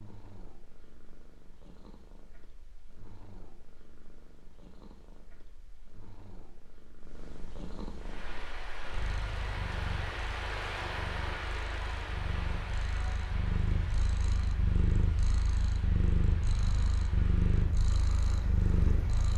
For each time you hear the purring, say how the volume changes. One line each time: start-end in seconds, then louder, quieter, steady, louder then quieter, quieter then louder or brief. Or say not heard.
0.0-19.3 louder.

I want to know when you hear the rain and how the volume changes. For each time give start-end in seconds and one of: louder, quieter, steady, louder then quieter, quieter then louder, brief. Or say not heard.
8.0-19.3 quieter.